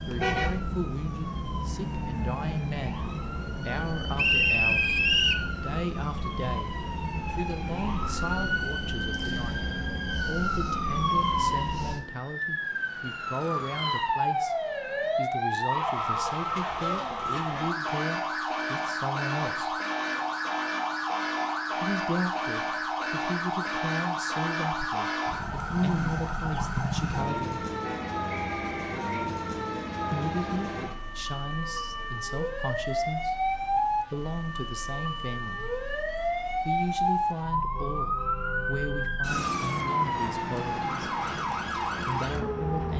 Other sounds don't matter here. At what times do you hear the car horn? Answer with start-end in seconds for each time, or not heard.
0.1-0.6, 27.8-28.2.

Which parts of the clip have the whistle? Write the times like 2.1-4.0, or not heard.
4.2-5.5, 28.3-29.1.